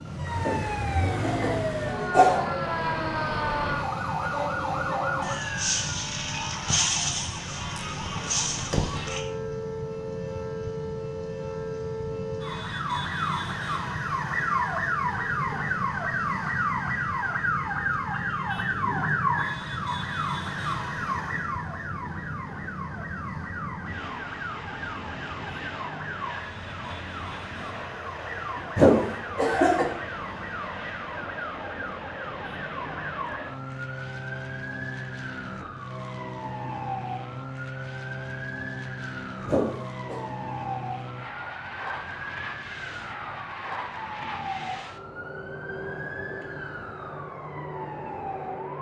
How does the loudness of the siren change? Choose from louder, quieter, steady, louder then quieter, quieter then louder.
quieter.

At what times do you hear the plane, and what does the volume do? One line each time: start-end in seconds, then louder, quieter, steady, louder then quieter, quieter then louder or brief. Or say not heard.
0.0-48.7 steady.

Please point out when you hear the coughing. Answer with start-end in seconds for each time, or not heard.
0.4-2.4, 28.8-29.9, 39.5-40.2.